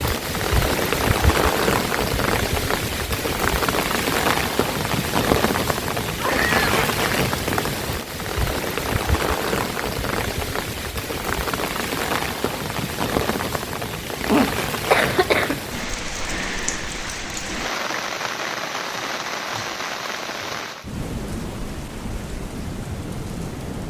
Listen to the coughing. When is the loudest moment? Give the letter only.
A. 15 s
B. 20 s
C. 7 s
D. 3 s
A.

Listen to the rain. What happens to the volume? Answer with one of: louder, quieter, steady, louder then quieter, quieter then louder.
quieter.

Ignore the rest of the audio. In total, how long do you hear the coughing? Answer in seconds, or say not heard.
2 s.